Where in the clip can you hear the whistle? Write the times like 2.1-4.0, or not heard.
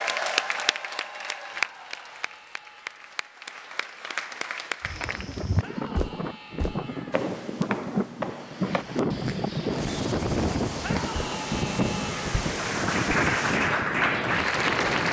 not heard.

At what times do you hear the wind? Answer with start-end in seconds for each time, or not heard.
5.0-15.0.